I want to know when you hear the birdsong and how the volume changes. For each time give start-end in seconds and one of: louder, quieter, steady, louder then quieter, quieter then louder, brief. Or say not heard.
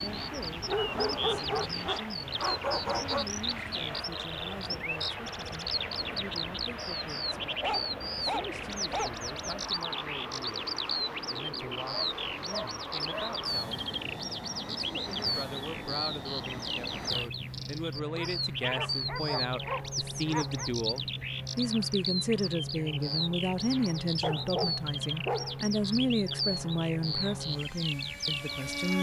0.0-28.9 steady.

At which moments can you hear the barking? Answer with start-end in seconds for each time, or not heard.
0.6-3.2, 7.6-9.2, 11.9-13.3, 18.1-20.7, 24.2-25.6.